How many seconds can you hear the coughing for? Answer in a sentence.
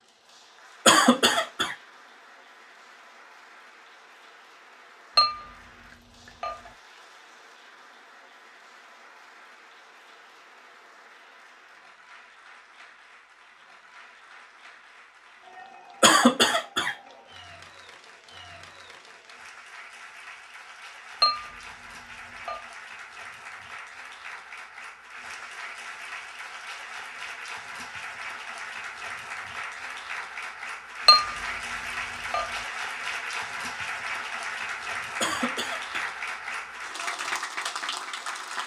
The coughing can be heard for 3 seconds in total.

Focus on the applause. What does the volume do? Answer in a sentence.
The volume of the applause goes up.